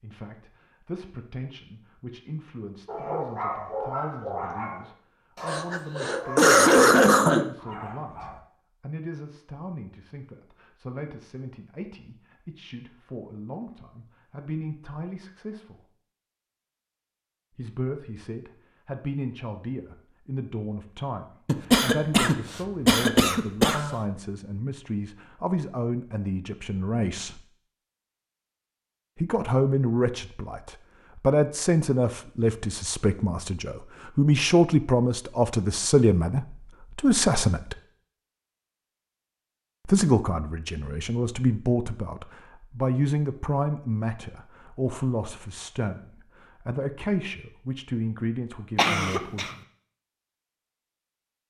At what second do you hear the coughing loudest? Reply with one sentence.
The volume of the coughing peaks at 7 seconds.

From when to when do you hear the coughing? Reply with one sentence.
The coughing can be heard from 5.5 to 7.5 s, from 21.4 to 23.9 s and from 48.8 to 49.5 s.